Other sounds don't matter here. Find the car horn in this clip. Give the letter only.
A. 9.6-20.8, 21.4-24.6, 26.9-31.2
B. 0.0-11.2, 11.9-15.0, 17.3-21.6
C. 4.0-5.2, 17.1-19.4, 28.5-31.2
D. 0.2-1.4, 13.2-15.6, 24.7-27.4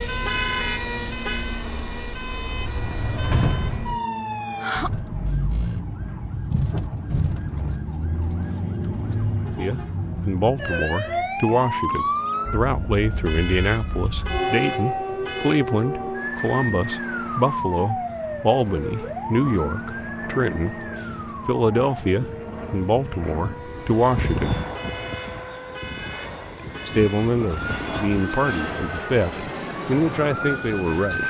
D.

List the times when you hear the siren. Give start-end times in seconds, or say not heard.
0.0-31.2.